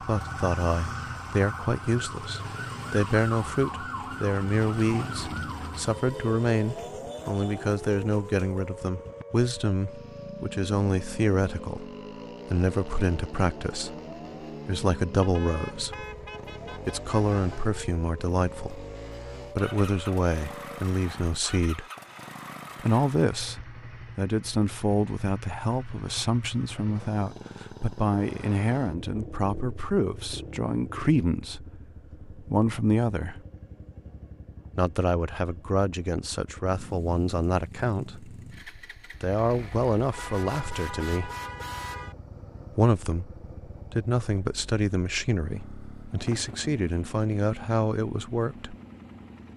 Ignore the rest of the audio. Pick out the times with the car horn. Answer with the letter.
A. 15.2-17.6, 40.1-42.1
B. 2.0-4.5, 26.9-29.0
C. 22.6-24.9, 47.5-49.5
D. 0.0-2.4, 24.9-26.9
A.